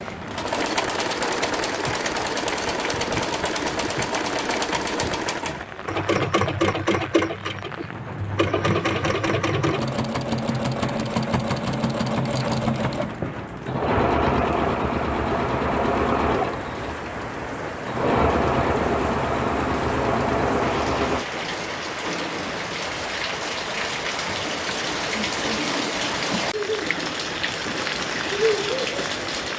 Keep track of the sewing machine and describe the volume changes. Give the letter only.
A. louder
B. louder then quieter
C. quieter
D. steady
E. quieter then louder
D.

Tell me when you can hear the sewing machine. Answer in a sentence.
The sewing machine can be heard from 0.0 to 21.2 s.